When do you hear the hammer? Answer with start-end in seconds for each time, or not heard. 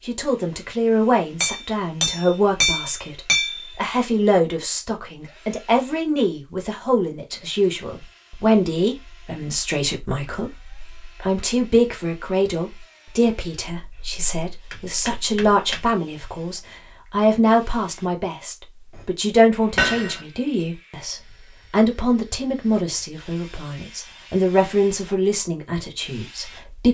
1.4-3.6, 13.8-15.9, 19.8-20.2.